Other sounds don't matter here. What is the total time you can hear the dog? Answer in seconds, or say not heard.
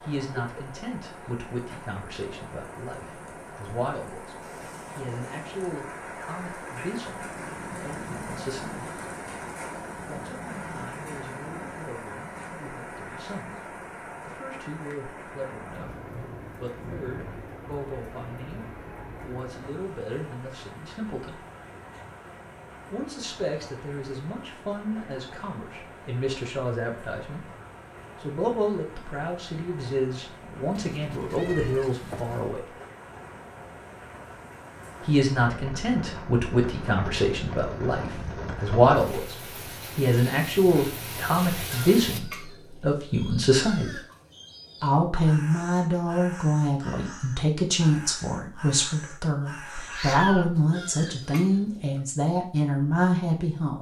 not heard.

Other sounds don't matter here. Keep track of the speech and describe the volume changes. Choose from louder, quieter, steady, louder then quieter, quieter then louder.
louder.